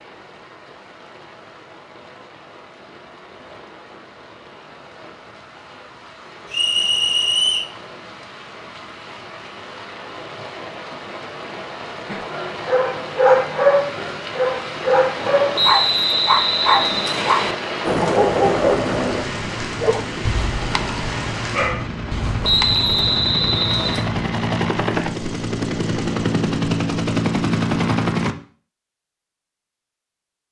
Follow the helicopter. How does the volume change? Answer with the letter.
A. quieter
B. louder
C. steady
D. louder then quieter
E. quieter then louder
E.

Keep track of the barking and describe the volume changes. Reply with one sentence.
The loudness of the barking goes down.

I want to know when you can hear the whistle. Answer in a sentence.
The whistle can be heard from 6.5 to 7.7 s, from 15.6 to 17.6 s and from 22.4 to 24.1 s.